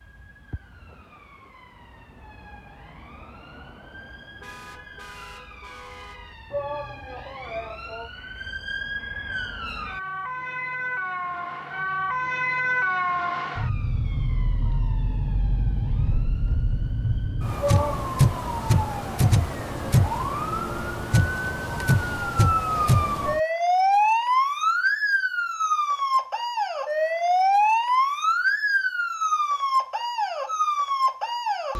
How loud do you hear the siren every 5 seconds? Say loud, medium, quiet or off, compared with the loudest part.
quiet, quiet, medium, loud, loud, loud, loud.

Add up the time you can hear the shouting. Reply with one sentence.
The shouting can be heard for 2 seconds in total.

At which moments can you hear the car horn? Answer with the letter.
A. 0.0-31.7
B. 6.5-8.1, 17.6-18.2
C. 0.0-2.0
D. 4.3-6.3
D.